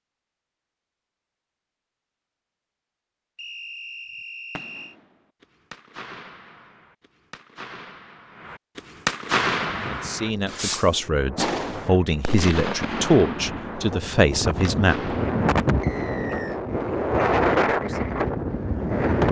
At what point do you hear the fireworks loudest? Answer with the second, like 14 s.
9 s.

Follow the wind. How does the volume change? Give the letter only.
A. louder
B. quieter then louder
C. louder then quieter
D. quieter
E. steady
A.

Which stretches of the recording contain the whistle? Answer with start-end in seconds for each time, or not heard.
3.4-5.0, 15.8-16.6.